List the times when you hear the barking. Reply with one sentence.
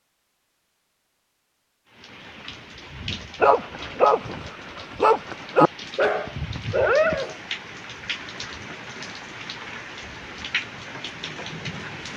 You can hear the barking from 3.4 to 7.3 s.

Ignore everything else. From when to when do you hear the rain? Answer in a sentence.
The rain can be heard from 1.9 to 12.1 s.